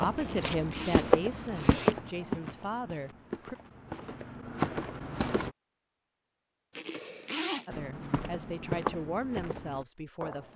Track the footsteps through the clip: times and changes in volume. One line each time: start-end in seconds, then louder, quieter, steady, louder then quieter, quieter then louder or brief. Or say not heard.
0.0-5.5 quieter then louder
7.7-10.5 brief.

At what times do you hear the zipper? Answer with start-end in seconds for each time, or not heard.
0.1-1.9, 6.8-7.7.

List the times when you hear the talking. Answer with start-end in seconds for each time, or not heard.
0.0-3.5, 7.7-10.5.